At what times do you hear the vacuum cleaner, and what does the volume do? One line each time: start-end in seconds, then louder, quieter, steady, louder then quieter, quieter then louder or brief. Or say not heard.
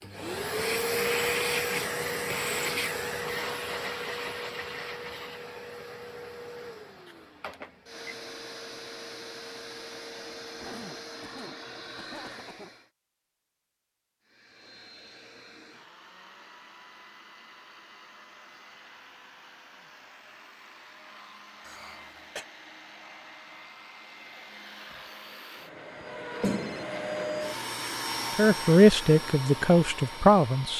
0.0-12.9 quieter
14.2-30.7 louder.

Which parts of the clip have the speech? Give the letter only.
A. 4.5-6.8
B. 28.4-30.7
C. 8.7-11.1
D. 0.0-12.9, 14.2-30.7
B.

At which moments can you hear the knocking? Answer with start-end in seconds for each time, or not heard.
not heard.